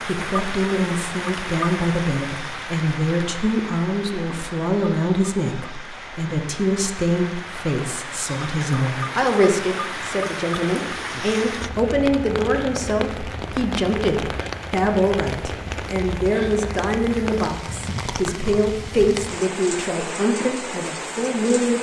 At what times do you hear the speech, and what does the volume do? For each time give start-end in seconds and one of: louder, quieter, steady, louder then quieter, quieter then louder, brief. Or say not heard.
0.1-21.7 steady.